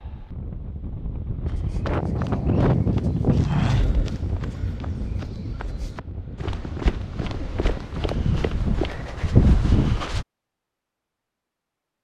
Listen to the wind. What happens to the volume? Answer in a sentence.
The loudness of the wind goes up, then down.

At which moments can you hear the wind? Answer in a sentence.
The wind can be heard from 0.0 to 8.8 s.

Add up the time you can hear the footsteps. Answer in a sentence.
You can hear the footsteps for 9 seconds altogether.